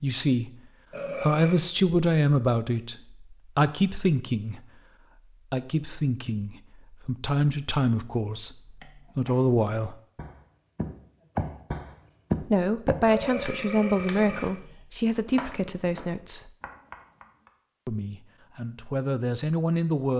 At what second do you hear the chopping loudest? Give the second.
12 s.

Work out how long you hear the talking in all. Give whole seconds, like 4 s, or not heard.
15 s.